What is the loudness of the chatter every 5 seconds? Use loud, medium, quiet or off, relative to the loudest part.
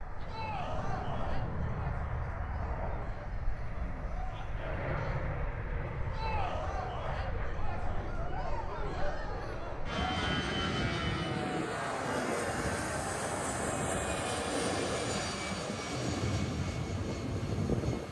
medium, loud, loud, off.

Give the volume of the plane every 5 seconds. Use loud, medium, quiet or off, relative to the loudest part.
medium, medium, loud, loud.